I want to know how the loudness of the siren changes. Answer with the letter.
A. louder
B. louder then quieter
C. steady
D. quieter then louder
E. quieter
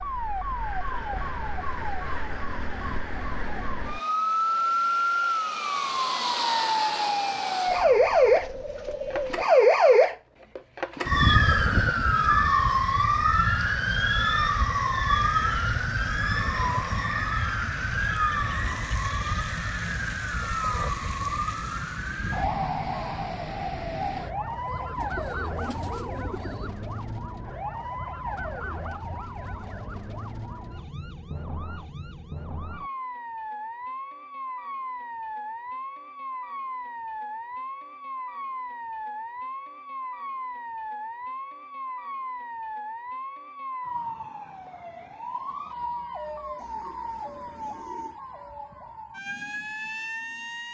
E.